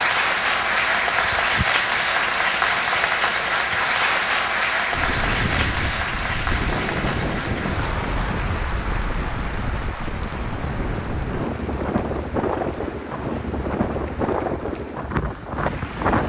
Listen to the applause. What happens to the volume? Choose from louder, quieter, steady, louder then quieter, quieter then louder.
quieter.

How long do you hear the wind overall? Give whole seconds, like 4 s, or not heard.
11 s.